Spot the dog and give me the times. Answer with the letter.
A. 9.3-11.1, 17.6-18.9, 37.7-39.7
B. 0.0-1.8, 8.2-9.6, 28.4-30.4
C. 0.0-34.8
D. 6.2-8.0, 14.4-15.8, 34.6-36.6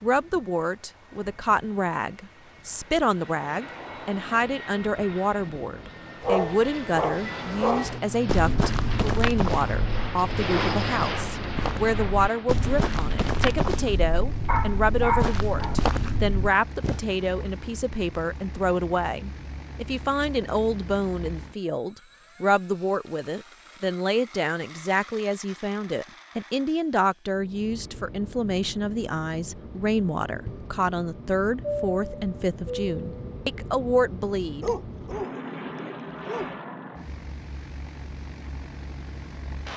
D.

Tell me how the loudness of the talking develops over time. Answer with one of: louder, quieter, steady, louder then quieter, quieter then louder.
steady.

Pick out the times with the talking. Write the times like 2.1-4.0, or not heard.
0.0-34.8.